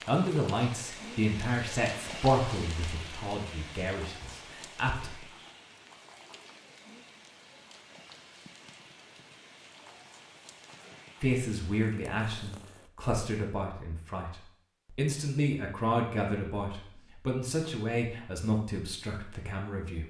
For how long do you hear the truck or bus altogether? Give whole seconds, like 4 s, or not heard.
not heard.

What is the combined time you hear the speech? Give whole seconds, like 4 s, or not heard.
14 s.